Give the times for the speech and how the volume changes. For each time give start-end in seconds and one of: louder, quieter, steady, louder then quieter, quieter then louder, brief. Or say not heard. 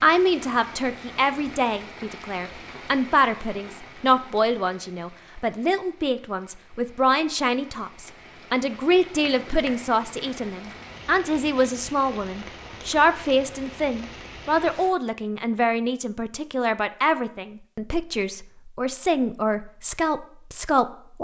0.0-21.1 steady.